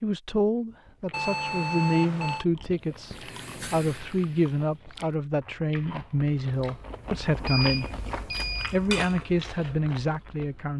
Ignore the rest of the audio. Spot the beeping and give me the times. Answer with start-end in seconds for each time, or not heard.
1.1-2.5, 7.5-8.8.